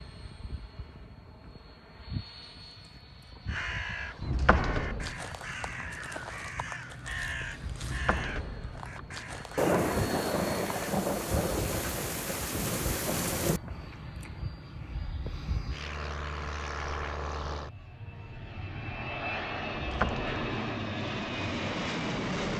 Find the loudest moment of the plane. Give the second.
22 s.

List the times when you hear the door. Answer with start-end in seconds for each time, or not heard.
4.2-5.2, 7.8-9.1, 19.7-20.4.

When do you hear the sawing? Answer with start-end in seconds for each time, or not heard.
not heard.